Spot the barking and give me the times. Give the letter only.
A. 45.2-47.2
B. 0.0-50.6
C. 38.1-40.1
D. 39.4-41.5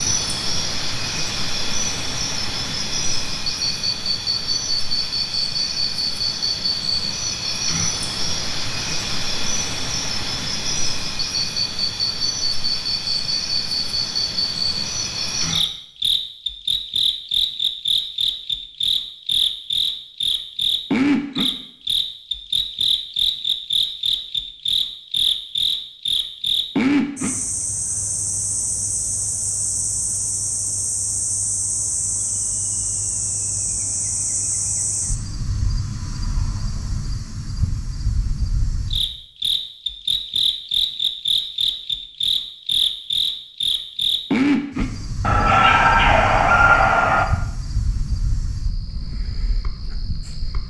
A.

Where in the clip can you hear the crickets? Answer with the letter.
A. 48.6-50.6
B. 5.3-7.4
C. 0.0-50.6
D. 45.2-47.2
C.